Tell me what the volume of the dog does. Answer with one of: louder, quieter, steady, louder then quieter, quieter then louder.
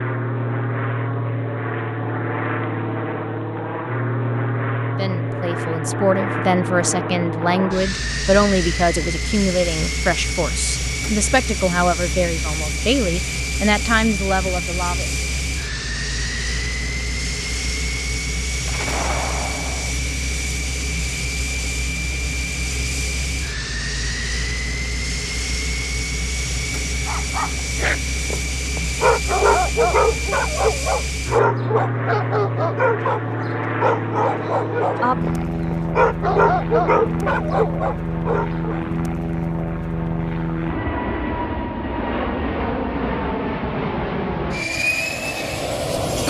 steady.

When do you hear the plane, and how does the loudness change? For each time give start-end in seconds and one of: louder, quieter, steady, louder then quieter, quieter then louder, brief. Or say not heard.
0.0-46.2 steady.